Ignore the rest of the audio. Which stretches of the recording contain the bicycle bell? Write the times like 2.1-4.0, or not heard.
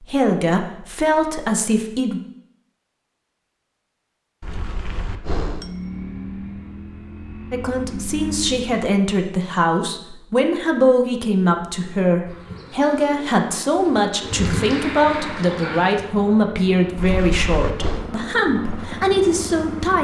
4.4-5.7, 16.9-18.1.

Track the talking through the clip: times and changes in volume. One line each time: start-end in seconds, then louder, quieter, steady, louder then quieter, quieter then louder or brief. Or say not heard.
0.0-2.2 brief
7.5-19.9 steady.